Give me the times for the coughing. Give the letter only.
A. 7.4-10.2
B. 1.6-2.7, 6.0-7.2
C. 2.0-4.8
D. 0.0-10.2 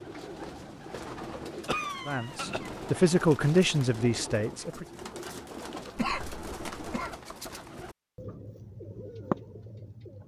B.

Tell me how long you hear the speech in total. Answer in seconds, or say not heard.
3 s.